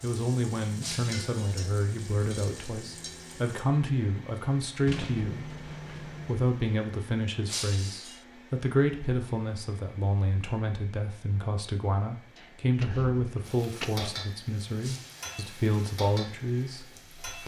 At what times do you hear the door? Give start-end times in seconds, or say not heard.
4.8-6.3, 12.3-13.9.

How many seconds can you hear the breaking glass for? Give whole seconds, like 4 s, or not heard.
2 s.